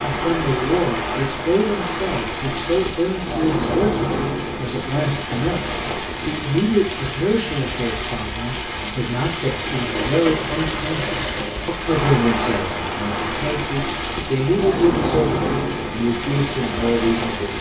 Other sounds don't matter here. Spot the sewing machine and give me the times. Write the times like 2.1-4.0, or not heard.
9.7-11.8.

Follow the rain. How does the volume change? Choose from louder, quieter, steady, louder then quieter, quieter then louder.
steady.